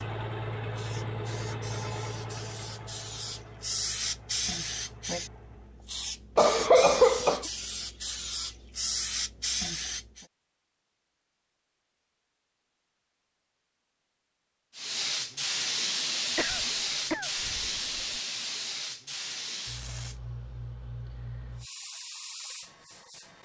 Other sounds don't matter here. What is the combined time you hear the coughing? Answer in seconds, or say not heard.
3 s.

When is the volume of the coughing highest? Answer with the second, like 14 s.
7 s.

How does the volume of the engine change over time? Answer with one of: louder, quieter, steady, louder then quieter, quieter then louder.
quieter.